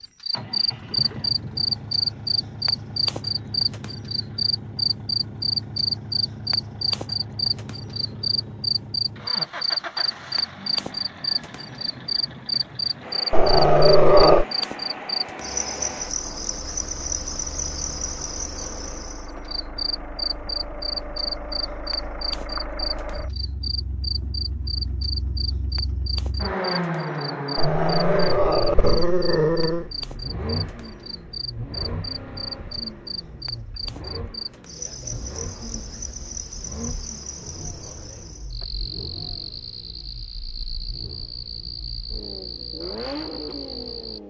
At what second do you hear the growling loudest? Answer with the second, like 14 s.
14 s.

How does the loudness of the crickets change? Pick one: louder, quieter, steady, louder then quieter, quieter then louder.
quieter.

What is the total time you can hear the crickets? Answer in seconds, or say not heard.
44 s.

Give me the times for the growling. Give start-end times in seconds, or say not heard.
13.3-14.4, 27.6-29.9.